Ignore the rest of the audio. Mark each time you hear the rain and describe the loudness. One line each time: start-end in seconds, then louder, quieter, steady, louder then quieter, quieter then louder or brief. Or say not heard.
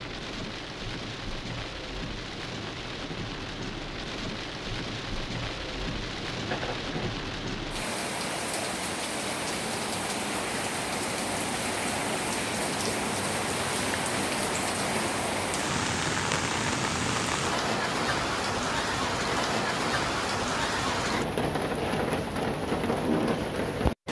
0.0-24.0 louder.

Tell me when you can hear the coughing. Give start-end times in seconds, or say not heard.
6.5-7.1.